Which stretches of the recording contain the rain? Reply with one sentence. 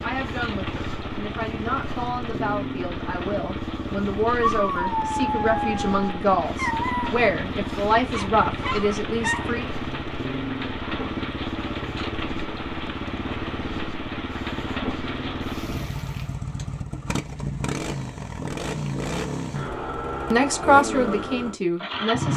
The rain can be heard from 0.0 to 16.4 s.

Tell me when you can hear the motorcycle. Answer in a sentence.
The motorcycle can be heard from 0.0 to 22.3 s.